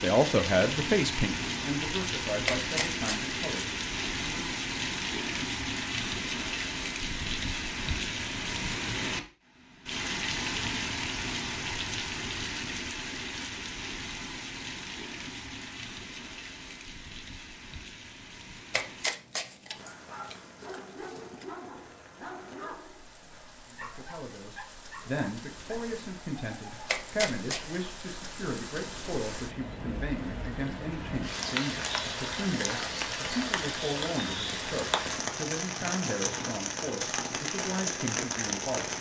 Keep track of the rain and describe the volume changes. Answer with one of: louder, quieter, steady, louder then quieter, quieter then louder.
quieter then louder.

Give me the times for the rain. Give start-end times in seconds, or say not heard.
0.0-38.9.